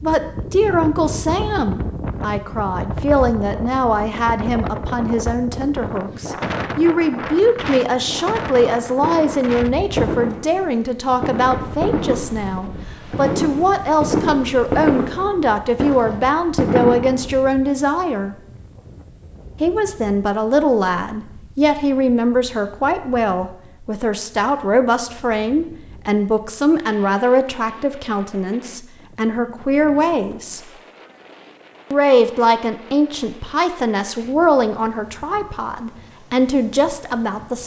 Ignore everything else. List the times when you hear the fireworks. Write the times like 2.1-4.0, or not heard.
8.0-17.4.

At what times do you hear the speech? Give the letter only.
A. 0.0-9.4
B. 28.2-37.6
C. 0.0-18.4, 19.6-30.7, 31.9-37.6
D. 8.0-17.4
C.